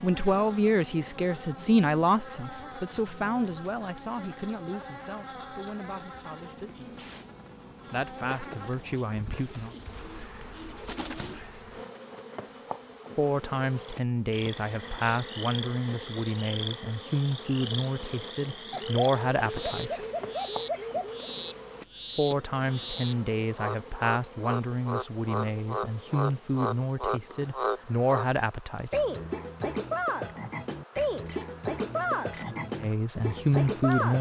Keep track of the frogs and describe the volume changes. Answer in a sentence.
The volume of the frogs goes up.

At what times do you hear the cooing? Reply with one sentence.
You can hear the cooing from 9.2 to 11.4 s and from 18.7 to 21.3 s.